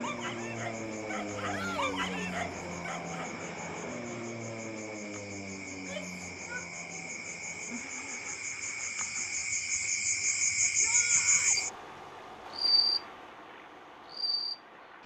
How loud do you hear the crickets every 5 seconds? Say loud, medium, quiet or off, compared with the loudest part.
quiet, medium, loud.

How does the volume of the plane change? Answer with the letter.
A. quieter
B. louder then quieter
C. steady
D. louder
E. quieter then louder
A.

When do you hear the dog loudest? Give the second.
2 s.